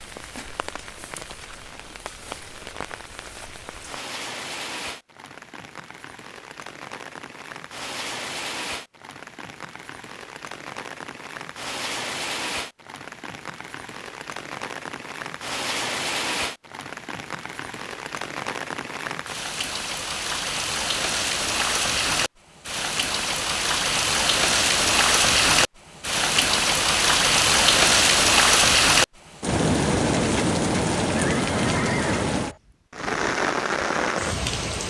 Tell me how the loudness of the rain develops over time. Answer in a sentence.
The loudness of the rain goes up.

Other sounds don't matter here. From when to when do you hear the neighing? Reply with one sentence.
You can hear the neighing from 31.1 to 32.6 s.